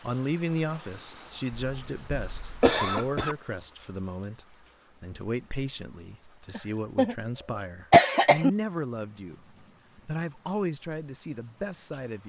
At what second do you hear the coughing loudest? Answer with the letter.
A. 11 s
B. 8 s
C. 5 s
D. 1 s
B.